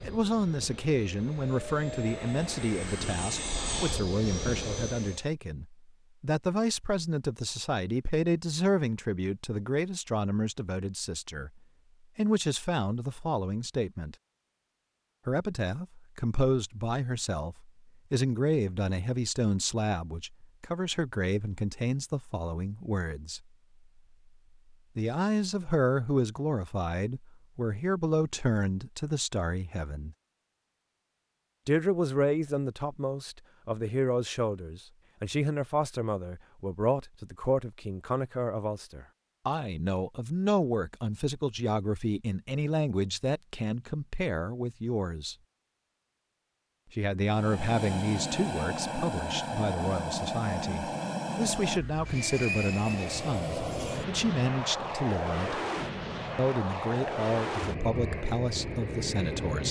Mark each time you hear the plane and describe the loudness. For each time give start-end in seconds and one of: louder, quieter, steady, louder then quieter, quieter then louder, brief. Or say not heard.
0.0-5.2 louder
47.2-59.6 steady.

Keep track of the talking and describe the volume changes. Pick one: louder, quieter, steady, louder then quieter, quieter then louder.
steady.